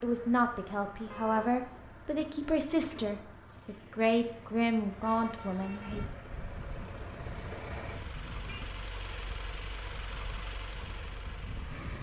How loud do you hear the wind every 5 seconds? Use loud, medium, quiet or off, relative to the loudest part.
off, loud, loud.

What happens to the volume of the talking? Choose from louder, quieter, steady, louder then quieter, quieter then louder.
steady.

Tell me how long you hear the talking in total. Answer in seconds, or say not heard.
6 s.